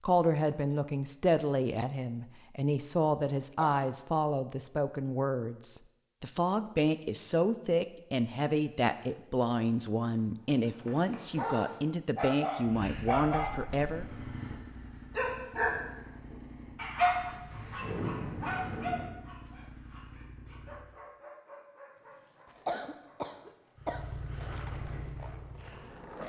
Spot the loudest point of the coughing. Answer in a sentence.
The volume of the coughing peaks at 23 seconds.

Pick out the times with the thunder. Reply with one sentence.
You can hear the thunder from 17.5 to 19.1 s.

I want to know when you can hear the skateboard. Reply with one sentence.
You can hear the skateboard from 21.9 to 26.2 s.